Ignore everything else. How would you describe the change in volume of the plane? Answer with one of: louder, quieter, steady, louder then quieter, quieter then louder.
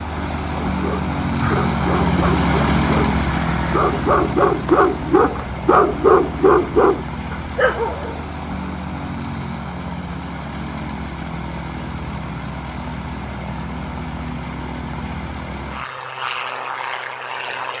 quieter.